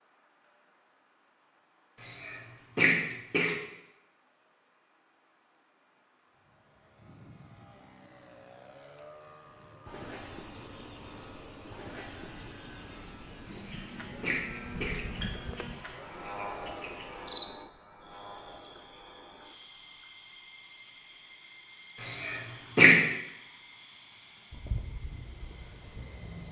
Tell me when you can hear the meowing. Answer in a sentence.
The meowing can't be heard in this clip.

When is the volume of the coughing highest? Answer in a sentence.
The loudest moment of the coughing is at 23 seconds.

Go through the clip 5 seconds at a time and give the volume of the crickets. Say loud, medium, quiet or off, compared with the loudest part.
quiet, quiet, loud, loud, loud, loud.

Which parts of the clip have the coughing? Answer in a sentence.
You can hear the coughing from 2.0 to 3.5 s, from 13.4 to 15.3 s and from 22.0 to 23.0 s.